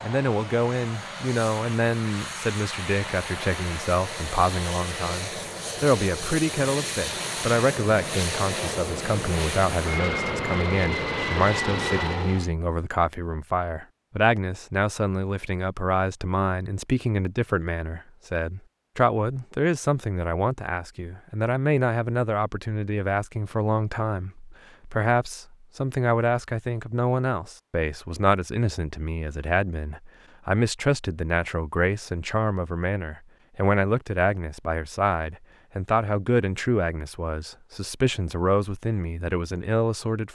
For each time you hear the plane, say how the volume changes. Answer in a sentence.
The plane can be heard from 0.0 to 12.5 s, getting louder.